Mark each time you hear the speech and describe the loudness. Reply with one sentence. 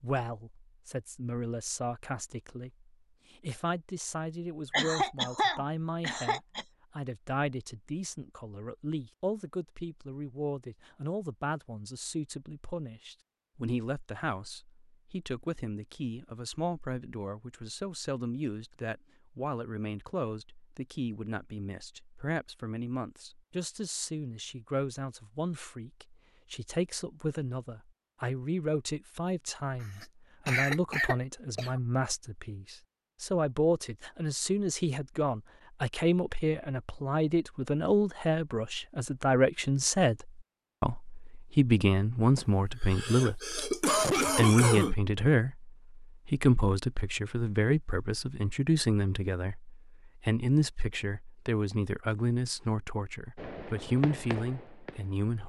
The speech can be heard from 0.0 to 55.4 s, getting louder.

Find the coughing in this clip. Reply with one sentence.
You can hear the coughing from 4.7 to 6.7 s, from 29.8 to 31.8 s and from 42.4 to 45.0 s.